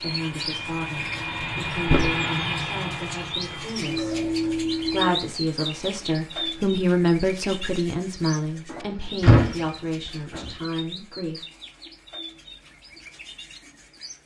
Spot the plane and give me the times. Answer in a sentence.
The plane can be heard from 0.0 to 5.1 s.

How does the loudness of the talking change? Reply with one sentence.
The volume of the talking goes up, then down.